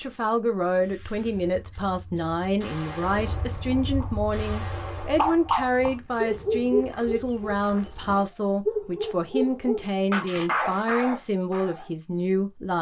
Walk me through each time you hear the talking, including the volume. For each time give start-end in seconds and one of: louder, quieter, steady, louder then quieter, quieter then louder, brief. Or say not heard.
0.0-12.7 steady.